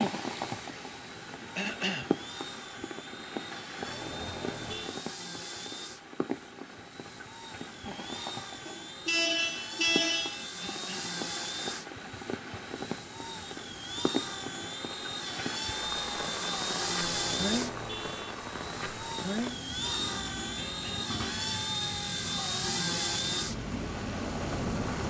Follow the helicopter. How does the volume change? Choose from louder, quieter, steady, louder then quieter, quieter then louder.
louder.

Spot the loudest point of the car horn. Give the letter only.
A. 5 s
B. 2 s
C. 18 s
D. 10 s
D.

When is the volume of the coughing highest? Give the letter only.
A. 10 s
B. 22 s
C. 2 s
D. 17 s
C.